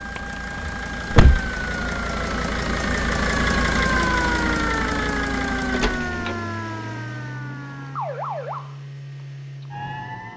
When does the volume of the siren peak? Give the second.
4 s.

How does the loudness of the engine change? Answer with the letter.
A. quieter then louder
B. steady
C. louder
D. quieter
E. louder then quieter
E.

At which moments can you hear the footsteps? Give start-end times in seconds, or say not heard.
not heard.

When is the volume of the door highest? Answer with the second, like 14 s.
1 s.